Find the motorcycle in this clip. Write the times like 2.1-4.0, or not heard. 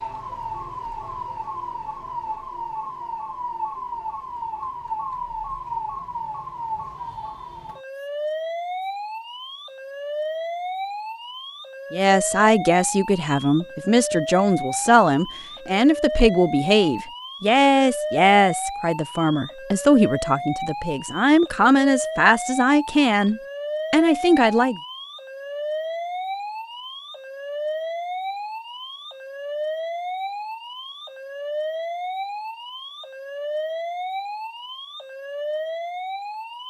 not heard.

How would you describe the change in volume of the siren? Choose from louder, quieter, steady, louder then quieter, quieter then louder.
steady.